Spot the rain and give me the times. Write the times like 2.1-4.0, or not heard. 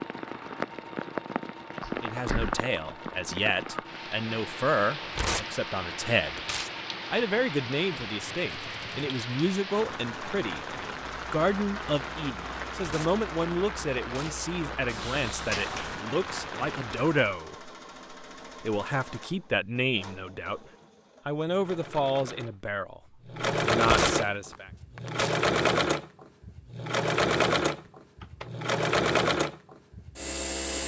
0.0-17.3.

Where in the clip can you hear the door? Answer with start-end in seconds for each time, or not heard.
1.8-2.5, 14.8-16.0, 27.9-28.6.